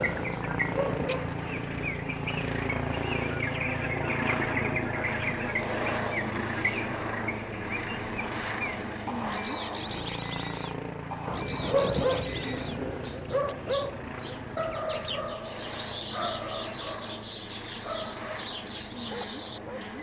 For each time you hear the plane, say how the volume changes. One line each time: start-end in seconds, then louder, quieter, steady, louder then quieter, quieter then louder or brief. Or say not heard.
0.0-19.9 quieter.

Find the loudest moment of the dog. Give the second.
12 s.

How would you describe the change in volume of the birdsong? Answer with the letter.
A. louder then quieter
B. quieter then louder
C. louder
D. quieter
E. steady
E.